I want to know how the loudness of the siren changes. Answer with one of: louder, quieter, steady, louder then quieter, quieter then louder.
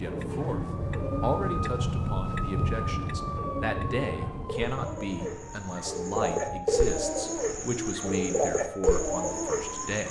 quieter.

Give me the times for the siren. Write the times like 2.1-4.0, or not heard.
0.0-9.9.